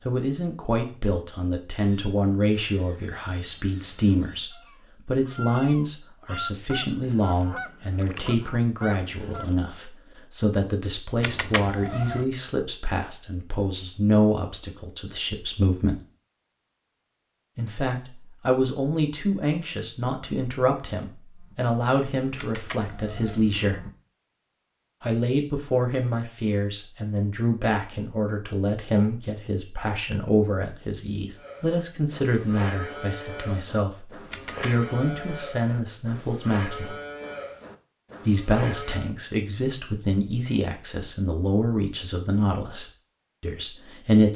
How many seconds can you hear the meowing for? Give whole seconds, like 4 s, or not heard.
3 s.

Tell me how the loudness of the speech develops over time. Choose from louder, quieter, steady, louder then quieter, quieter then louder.
steady.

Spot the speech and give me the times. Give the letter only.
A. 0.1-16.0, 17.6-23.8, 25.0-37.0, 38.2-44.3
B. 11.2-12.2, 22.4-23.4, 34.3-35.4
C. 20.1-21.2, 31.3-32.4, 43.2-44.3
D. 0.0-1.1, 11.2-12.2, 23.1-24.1
A.